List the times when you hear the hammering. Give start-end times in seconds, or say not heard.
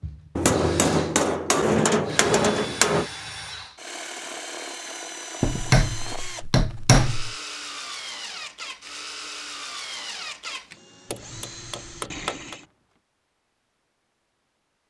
0.3-3.0, 5.4-7.3, 11.1-12.6.